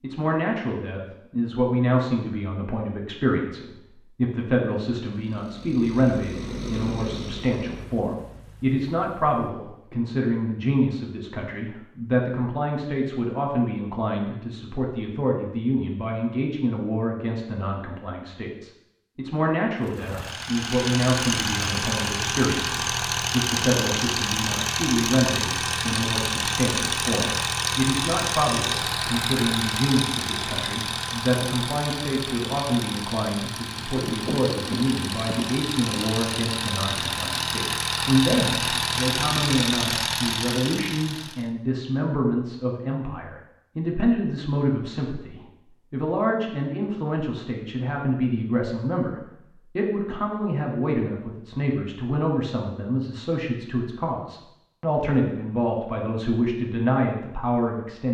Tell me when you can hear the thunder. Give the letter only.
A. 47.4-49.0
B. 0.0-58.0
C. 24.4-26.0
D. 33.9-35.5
D.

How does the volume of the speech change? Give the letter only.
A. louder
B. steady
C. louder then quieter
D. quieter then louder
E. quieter
B.